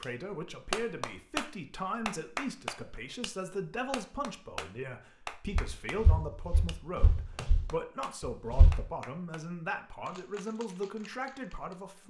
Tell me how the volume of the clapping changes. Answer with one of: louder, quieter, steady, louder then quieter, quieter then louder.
quieter.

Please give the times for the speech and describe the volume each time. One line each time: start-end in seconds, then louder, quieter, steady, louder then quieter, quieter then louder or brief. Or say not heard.
0.0-12.0 steady.